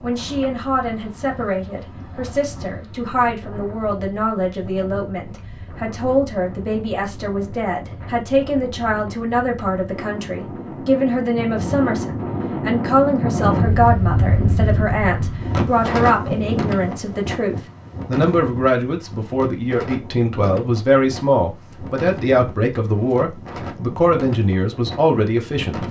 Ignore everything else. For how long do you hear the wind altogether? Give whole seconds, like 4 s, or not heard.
26 s.